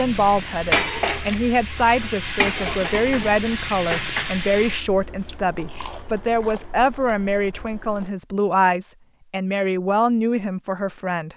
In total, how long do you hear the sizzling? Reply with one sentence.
The sizzling can be heard for 5 seconds in total.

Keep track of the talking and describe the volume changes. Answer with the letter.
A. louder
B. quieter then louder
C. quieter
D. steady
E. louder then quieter
D.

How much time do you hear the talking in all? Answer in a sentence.
The talking can be heard for 11 seconds in total.